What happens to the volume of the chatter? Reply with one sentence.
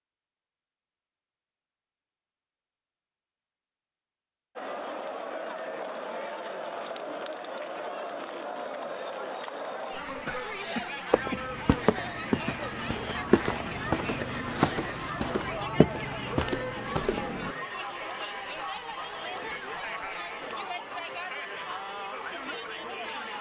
The loudness of the chatter stays about the same.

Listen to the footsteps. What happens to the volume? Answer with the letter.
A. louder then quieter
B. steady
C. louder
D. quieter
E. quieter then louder
B.